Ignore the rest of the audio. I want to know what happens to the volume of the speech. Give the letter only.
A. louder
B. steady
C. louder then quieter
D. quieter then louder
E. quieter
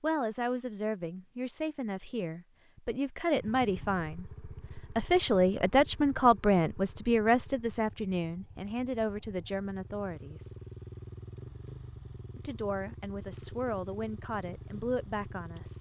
C.